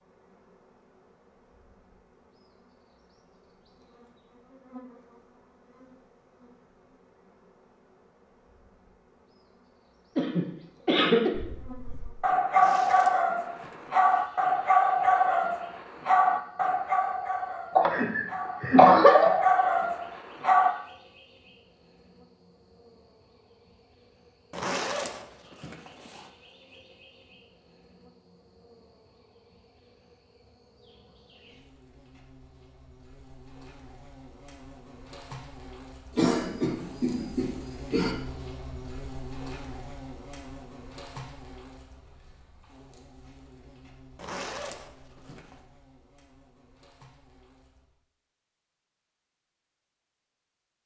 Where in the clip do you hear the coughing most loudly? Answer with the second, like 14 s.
19 s.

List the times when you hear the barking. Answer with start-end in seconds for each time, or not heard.
11.3-20.8.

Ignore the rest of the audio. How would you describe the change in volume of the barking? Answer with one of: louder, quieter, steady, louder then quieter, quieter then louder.
quieter then louder.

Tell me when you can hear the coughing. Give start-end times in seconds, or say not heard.
10.2-11.3, 17.8-19.3, 36.1-38.1.